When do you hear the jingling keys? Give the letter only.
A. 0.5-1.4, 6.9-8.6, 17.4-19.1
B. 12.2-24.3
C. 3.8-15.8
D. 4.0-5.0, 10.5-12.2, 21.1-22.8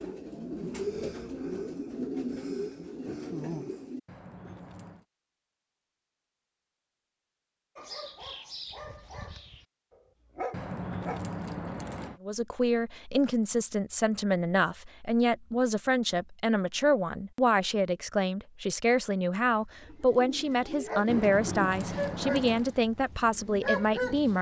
D.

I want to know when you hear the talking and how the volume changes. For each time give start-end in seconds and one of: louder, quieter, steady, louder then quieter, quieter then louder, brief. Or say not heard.
12.2-24.3 steady.